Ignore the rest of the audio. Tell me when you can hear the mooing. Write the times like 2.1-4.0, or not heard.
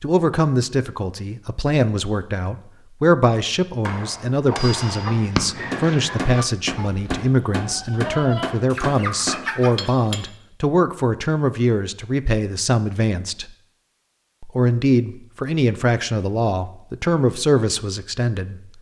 not heard.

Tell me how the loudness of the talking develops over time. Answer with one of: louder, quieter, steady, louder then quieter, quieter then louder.
steady.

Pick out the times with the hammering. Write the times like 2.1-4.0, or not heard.
3.9-10.2.